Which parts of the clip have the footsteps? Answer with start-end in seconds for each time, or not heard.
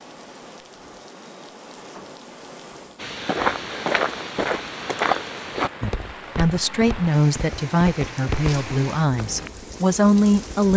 3.0-9.5.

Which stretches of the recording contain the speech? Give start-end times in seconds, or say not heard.
5.8-10.7.